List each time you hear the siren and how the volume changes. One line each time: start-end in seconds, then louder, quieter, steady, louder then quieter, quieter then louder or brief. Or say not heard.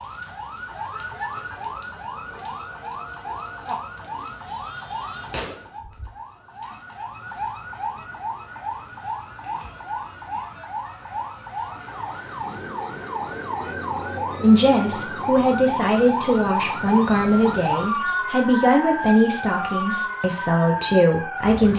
0.0-21.7 louder.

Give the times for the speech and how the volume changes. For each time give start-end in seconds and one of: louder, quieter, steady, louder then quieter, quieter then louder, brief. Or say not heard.
14.4-21.7 steady.